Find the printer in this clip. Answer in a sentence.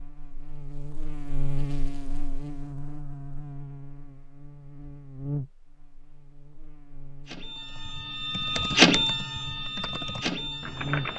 The printer can be heard from 7.2 to 11.1 s.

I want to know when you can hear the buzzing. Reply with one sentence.
You can hear the buzzing from 0.0 to 11.1 s.